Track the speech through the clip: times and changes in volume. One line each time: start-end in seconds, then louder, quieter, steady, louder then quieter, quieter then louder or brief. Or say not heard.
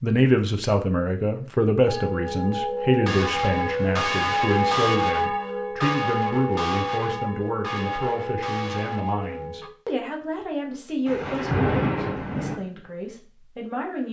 0.0-14.0 quieter.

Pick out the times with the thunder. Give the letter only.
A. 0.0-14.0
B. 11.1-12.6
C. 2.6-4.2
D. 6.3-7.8
B.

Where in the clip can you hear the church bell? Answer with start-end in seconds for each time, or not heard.
1.9-9.7.